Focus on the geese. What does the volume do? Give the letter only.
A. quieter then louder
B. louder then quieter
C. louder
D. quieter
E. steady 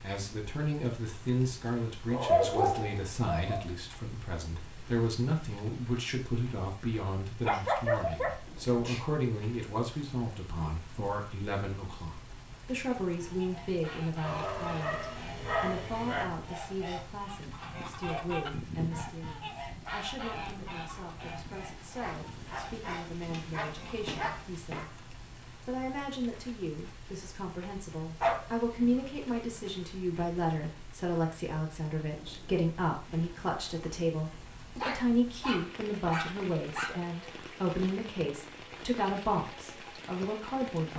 B.